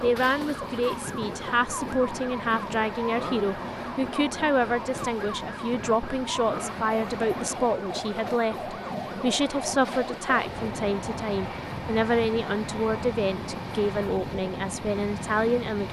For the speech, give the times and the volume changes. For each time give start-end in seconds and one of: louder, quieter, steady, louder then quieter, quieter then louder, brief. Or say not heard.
0.0-15.8 steady.